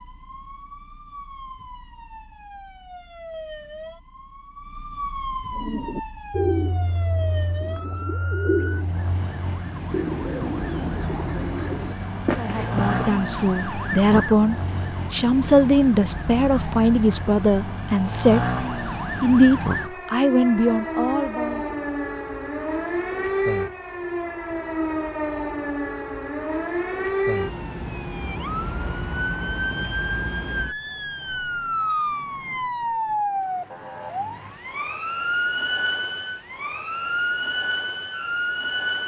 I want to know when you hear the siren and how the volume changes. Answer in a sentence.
You can hear the siren from 0.0 to 39.0 s, getting louder.